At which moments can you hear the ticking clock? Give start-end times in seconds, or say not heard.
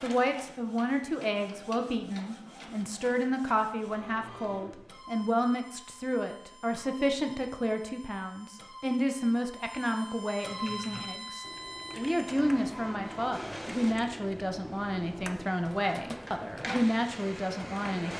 not heard.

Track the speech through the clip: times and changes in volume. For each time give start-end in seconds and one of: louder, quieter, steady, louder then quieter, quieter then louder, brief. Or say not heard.
0.0-18.1 steady.